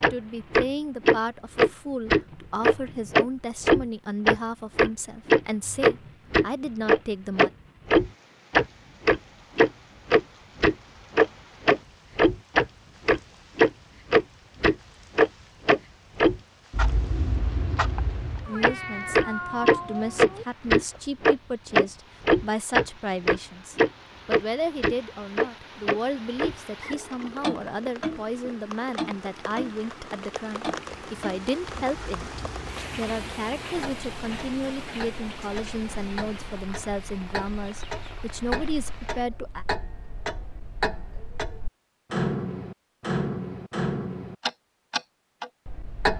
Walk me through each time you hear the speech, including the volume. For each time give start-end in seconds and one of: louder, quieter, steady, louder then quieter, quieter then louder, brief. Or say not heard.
0.0-7.5 steady
18.4-39.6 steady.